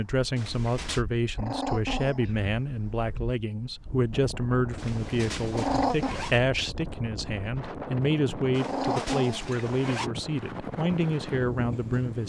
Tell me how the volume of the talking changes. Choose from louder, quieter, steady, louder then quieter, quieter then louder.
steady.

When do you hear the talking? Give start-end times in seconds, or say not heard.
0.0-12.2.